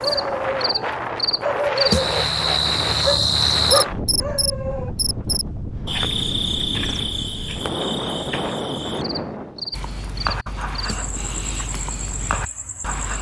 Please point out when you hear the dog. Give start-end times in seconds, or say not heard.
0.0-4.9, 9.7-13.1.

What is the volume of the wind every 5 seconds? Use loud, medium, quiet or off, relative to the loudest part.
loud, loud, off.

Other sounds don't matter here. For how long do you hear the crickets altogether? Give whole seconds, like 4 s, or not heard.
13 s.